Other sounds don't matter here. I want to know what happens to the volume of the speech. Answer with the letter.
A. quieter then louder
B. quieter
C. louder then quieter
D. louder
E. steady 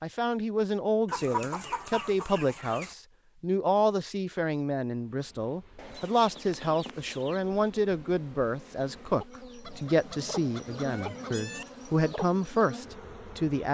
E.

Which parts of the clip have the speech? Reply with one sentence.
The speech can be heard from 0.0 to 13.7 s.